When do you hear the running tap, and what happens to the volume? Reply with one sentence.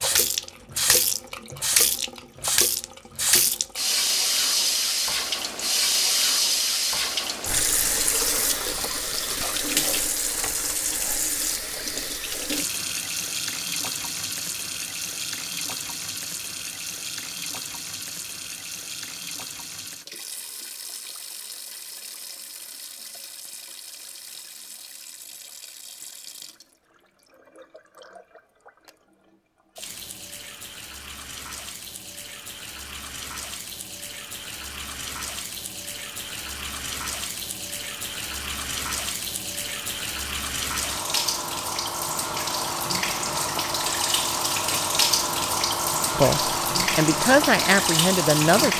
You can hear the running tap from 0.0 to 48.7 s, getting quieter then louder.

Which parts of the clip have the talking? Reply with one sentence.
You can hear the talking from 46.1 to 48.7 s.